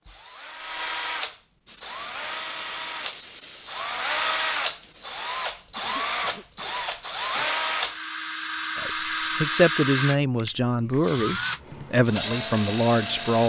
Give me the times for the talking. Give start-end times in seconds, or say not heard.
8.8-13.4.